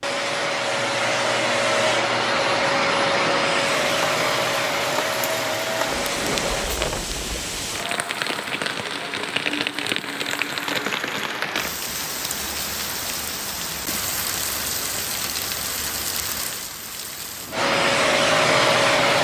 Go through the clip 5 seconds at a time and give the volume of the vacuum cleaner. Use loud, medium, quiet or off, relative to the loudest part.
loud, medium, off, loud.